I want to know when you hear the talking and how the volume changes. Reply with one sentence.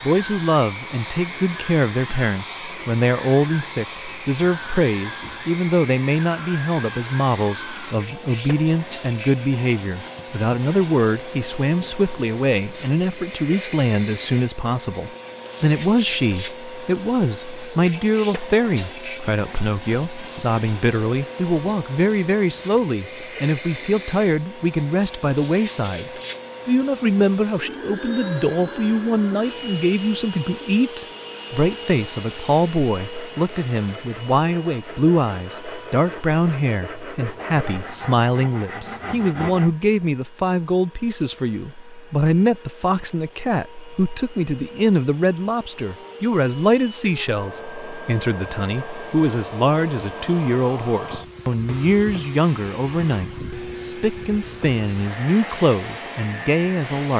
You can hear the talking from 0.0 to 57.1 s, at a steady volume.